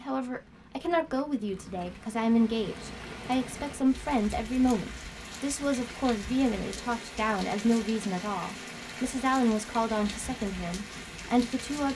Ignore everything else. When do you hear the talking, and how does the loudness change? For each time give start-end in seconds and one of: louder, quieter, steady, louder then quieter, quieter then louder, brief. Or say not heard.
0.0-11.9 steady.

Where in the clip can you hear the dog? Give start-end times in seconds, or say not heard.
not heard.